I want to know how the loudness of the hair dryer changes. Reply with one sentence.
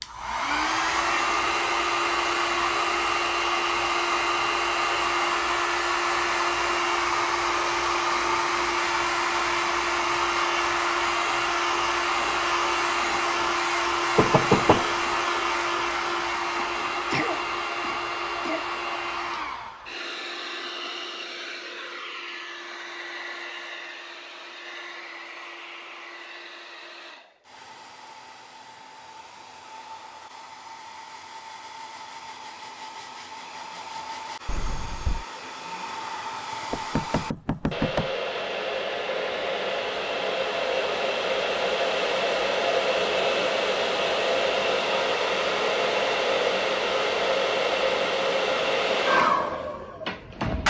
The volume of the hair dryer goes down, then up.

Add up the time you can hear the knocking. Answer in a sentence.
The knocking can be heard for 2 seconds in total.